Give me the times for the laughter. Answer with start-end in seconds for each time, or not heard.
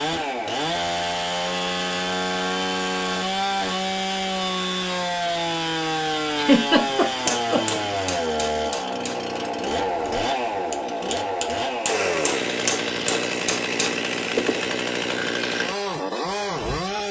6.3-7.8.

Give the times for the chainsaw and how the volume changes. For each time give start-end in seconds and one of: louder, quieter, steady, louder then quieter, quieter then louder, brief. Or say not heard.
0.0-17.0 steady.